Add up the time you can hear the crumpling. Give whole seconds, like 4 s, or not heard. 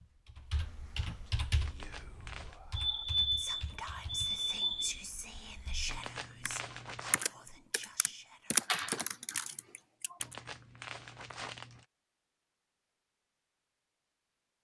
4 s.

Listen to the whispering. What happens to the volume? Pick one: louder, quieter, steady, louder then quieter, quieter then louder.
louder then quieter.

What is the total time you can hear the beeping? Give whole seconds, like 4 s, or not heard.
2 s.